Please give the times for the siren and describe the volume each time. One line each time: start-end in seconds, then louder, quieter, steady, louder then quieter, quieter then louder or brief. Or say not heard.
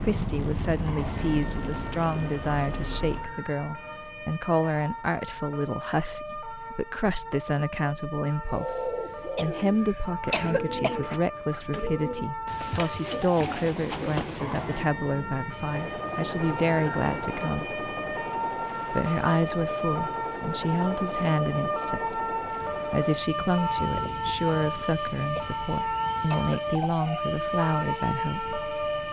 0.0-29.0 louder.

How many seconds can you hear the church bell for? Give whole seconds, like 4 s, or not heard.
not heard.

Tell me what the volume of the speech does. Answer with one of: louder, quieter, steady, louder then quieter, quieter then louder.
steady.